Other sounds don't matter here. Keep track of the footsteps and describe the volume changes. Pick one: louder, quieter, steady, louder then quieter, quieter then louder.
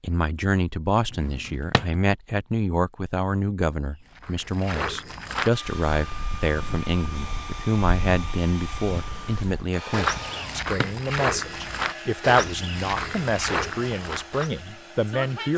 quieter then louder.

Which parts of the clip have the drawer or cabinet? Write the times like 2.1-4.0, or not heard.
1.1-2.0, 10.5-10.9.